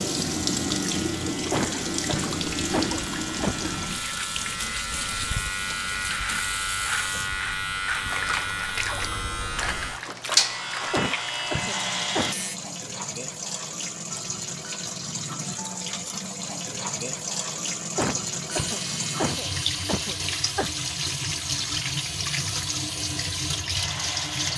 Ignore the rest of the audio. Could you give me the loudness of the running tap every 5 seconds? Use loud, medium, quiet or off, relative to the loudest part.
loud, medium, medium, loud, loud.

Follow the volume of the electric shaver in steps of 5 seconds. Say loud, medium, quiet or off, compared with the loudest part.
medium, loud, loud, medium, medium.